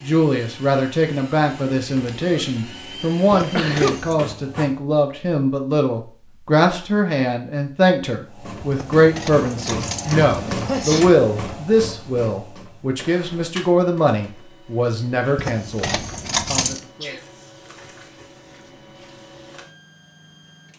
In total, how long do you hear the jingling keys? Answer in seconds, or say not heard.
4 s.